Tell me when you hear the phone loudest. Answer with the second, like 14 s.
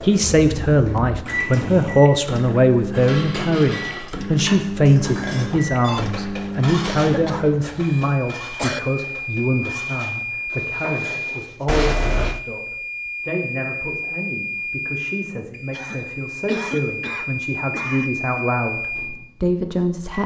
12 s.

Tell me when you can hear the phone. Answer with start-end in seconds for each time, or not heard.
5.3-6.0, 11.7-12.4.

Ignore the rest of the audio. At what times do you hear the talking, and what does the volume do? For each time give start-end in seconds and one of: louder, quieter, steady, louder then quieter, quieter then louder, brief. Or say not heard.
0.0-20.2 quieter then louder.